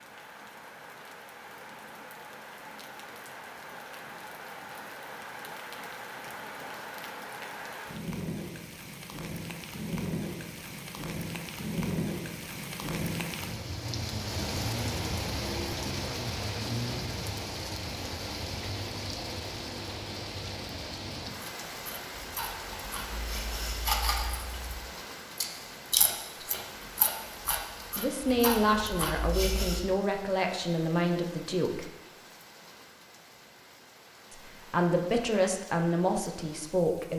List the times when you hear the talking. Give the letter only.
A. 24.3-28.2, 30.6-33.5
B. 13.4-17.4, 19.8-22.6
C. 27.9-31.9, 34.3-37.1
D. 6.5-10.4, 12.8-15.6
C.